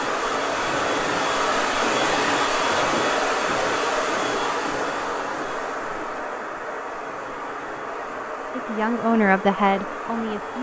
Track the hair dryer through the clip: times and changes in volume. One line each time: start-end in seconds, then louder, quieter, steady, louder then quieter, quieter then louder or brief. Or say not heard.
0.0-10.5 quieter.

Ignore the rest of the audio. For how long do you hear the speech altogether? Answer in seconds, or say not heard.
2 s.